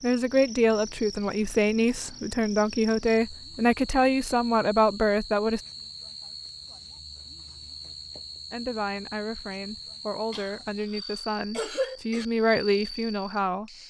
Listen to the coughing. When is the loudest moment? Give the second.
12 s.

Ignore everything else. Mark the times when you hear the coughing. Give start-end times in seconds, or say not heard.
10.3-12.2.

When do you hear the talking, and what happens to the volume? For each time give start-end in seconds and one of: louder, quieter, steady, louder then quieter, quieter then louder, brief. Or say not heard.
0.0-5.6 steady
8.5-13.8 louder.